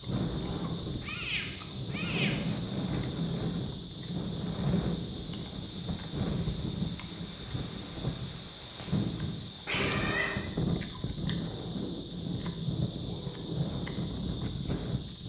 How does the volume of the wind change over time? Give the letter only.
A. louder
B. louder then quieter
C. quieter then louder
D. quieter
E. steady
E.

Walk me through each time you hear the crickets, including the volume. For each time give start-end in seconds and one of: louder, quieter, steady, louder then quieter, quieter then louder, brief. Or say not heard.
0.0-15.2 steady.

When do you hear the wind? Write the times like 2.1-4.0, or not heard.
0.0-15.2.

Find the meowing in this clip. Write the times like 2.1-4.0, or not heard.
0.4-2.4, 9.7-10.4.